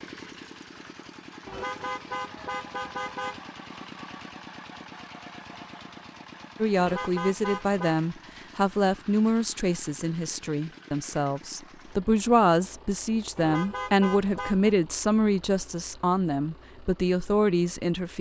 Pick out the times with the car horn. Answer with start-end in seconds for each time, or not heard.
1.4-3.4, 6.8-8.0, 13.3-14.7.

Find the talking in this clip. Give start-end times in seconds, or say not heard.
6.6-18.1.